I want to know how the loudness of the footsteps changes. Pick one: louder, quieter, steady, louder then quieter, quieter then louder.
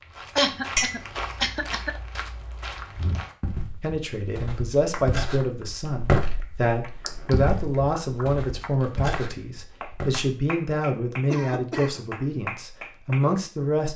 louder then quieter.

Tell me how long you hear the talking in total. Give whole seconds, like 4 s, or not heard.
10 s.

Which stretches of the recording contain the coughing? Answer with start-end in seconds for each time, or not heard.
0.3-1.9, 11.3-12.1.